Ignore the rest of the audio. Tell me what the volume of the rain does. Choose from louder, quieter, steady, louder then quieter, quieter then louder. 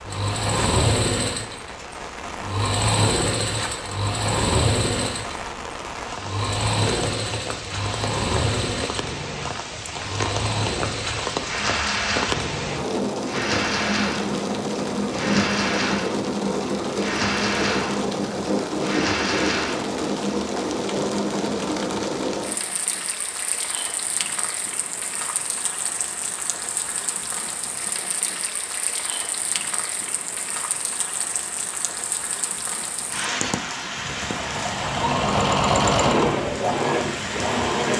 louder then quieter.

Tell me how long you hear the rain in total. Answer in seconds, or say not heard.
38 s.